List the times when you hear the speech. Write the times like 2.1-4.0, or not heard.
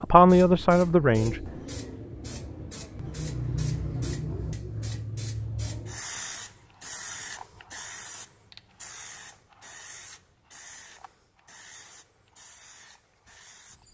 0.0-1.6.